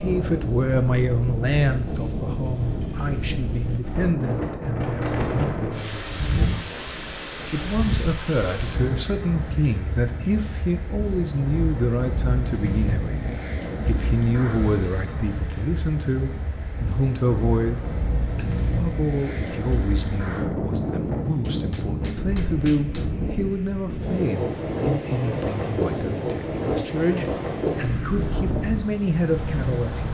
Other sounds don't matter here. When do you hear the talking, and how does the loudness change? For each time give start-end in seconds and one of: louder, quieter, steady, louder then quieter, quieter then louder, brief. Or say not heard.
0.0-30.0 steady.